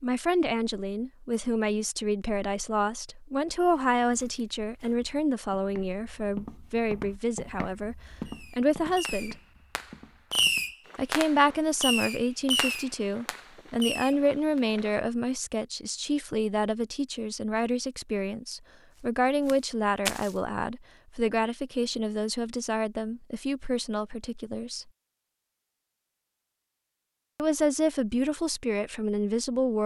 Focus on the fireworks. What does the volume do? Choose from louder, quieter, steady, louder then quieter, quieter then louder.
louder then quieter.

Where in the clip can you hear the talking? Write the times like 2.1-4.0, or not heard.
0.0-9.3, 10.9-24.9, 27.4-29.8.